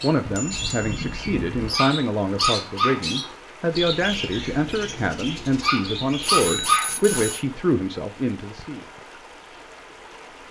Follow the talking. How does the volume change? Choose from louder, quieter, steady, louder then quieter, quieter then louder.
steady.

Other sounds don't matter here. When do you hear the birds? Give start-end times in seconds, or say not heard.
0.0-6.7.